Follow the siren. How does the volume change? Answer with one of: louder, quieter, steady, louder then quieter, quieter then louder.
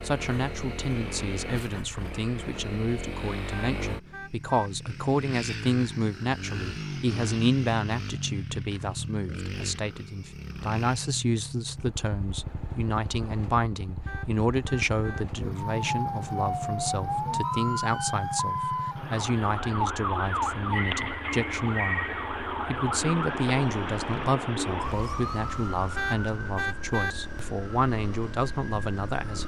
quieter.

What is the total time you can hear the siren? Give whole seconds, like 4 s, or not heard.
14 s.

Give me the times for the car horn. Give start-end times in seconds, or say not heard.
3.5-4.7, 14.1-15.2, 25.9-27.1.